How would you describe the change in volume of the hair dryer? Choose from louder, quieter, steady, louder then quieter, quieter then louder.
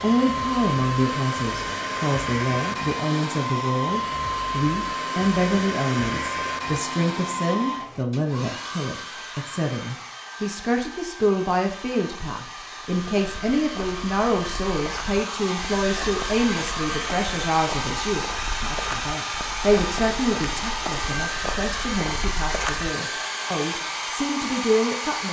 quieter then louder.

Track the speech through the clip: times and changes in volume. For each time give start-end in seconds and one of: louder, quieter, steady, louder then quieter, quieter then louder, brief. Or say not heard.
0.0-25.2 steady.